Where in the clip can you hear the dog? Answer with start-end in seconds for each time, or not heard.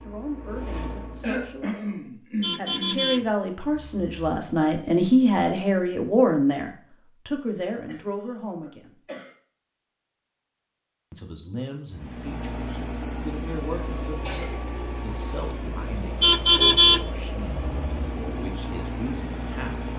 not heard.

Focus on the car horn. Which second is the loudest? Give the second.
17 s.